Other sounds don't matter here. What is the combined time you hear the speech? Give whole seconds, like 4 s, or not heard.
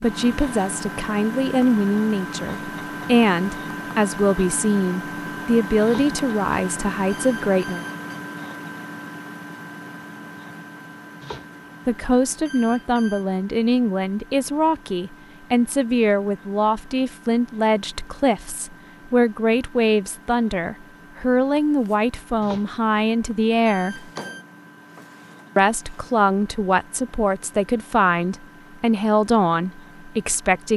25 s.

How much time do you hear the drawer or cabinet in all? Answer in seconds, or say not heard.
2 s.